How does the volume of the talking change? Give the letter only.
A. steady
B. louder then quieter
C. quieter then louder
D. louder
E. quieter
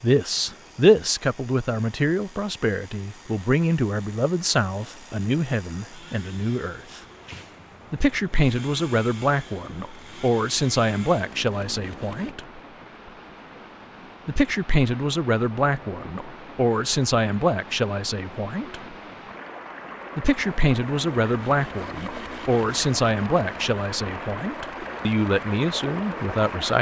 A.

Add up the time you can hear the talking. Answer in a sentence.
You can hear the talking for 23 seconds altogether.